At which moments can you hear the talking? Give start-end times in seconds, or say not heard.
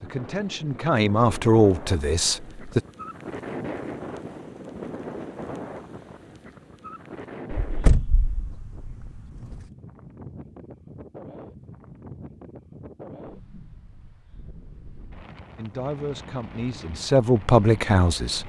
0.0-2.8, 15.6-18.4.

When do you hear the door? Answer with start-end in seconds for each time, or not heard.
7.6-9.6.